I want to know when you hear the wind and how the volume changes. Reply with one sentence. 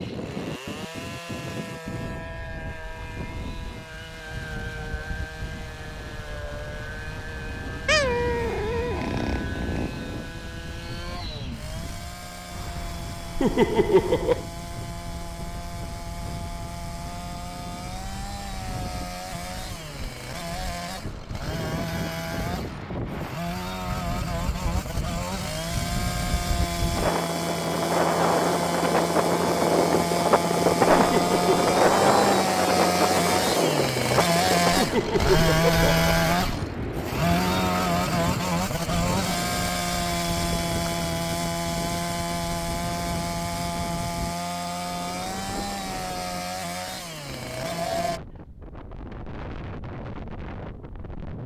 You can hear the wind from 0.0 to 51.4 s, getting louder then quieter.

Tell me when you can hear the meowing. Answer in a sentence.
You can hear the meowing from 7.8 to 9.9 s.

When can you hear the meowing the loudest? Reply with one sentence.
The volume of the meowing peaks at 8 seconds.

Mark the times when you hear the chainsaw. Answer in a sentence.
The chainsaw can be heard from 0.0 to 48.2 s.